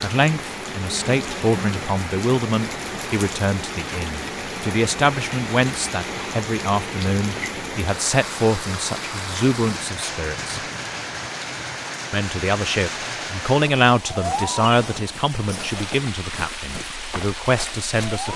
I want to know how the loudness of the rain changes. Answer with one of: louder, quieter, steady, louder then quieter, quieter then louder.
steady.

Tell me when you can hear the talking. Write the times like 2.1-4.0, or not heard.
0.0-10.6, 12.1-18.3.